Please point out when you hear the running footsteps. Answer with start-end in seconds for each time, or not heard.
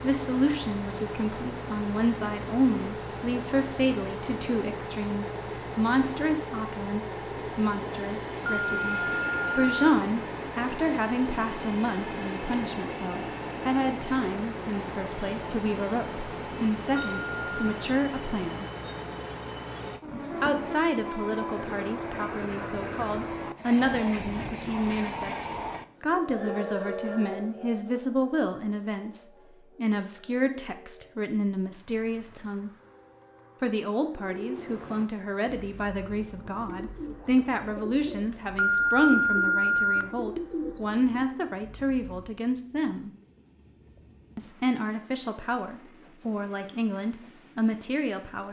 not heard.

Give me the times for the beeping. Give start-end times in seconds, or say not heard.
8.4-9.8, 16.9-17.6, 38.5-40.1.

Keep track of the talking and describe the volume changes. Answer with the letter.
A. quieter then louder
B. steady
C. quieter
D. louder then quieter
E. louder
B.